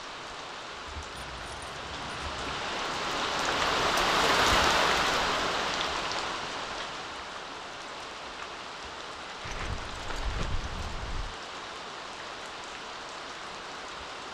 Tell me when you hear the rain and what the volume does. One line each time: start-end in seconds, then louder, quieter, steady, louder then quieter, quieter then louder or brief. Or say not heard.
0.0-14.2 louder then quieter.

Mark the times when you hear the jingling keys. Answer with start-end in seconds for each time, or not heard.
1.1-2.6, 9.4-11.3.